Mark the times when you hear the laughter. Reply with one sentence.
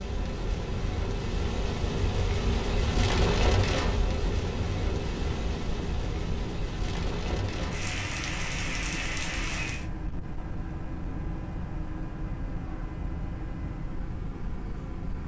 You can't hear the laughter here.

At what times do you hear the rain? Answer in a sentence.
The rain can be heard from 0.0 to 9.8 s.